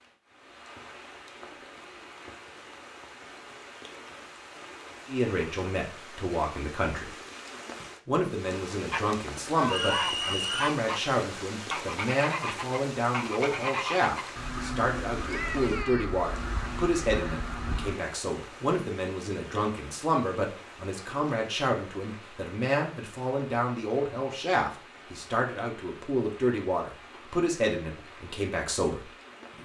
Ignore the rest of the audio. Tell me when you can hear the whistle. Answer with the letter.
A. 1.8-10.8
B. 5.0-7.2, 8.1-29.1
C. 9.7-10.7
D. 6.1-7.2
C.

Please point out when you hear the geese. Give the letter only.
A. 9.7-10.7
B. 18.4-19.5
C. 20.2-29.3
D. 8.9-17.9
D.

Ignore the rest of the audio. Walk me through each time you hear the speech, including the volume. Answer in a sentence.
The speech can be heard briefly from 5.0 to 7.2 s; and from 8.1 to 29.1 s, at a steady volume.